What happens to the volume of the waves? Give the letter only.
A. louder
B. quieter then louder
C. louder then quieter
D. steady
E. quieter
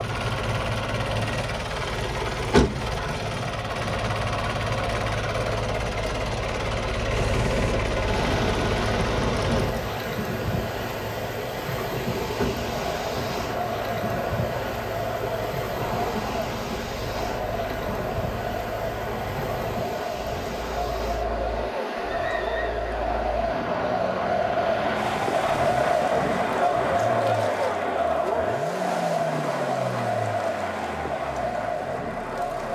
E.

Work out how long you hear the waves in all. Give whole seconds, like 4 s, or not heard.
26 s.